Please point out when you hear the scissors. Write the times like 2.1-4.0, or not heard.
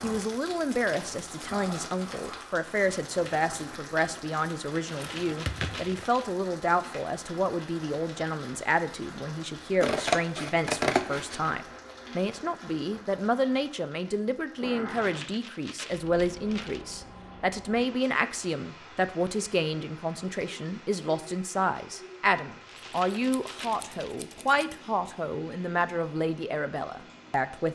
5.2-6.0, 9.8-11.5, 22.8-24.8.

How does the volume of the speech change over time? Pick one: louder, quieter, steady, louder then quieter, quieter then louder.
steady.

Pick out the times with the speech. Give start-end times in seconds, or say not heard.
0.0-27.7.